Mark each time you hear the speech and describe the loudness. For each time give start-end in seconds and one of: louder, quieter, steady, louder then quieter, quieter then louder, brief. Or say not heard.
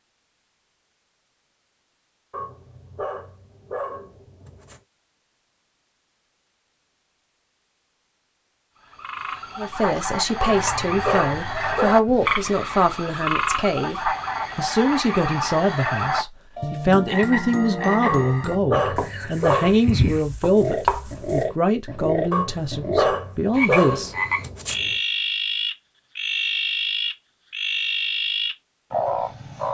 9.6-24.1 steady.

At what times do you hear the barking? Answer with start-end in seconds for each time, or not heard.
2.3-4.8, 10.4-12.0, 18.1-19.8, 22.3-24.9.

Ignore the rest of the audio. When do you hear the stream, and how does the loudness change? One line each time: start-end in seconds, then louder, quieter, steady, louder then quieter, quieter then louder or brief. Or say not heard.
not heard.